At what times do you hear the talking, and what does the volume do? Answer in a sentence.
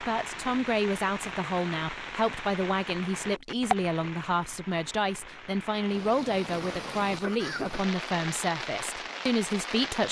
The talking can be heard from 0.0 to 10.0 s, at a steady volume.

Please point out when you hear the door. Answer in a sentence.
The door can't be heard in this clip.